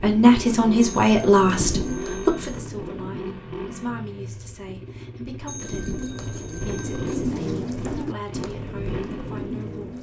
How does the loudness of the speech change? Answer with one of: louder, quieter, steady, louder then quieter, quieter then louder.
quieter.